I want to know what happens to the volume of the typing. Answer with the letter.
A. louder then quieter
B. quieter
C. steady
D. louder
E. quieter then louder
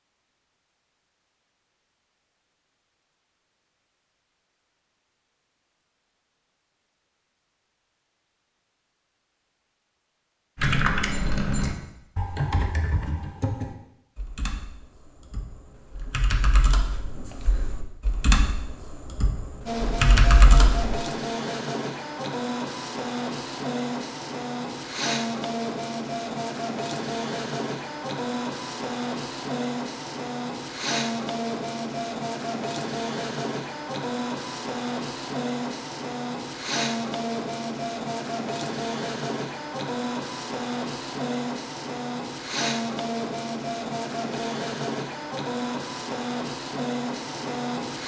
E.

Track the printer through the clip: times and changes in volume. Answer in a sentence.
You can hear the printer from 19.6 to 48.0 s, at a steady volume.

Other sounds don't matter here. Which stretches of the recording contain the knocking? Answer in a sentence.
The knocking can't be heard in this clip.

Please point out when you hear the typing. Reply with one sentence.
The typing can be heard from 10.6 to 21.0 s.